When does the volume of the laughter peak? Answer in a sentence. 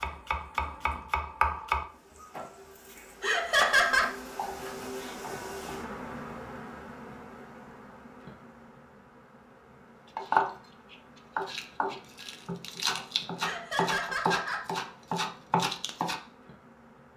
The volume of the laughter peaks at 4 seconds.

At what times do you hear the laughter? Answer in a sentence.
You can hear the laughter from 3.2 to 4.0 s and from 13.4 to 14.7 s.